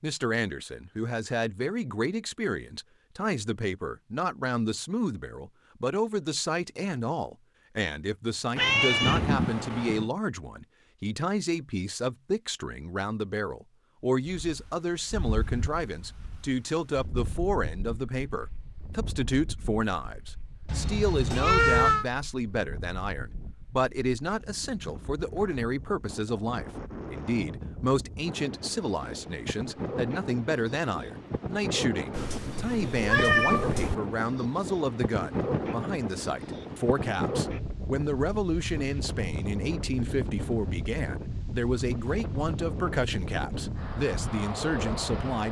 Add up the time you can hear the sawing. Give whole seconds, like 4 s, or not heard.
not heard.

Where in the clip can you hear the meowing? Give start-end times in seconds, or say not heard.
8.6-10.1, 20.6-22.1, 32.1-34.0.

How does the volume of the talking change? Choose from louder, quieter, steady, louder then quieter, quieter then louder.
steady.